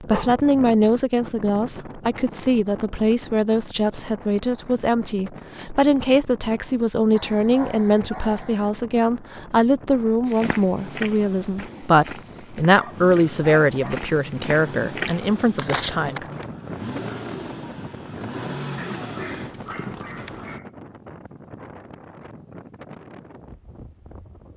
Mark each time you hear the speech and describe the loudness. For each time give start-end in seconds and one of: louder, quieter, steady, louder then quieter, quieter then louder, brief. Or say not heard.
0.0-16.4 steady.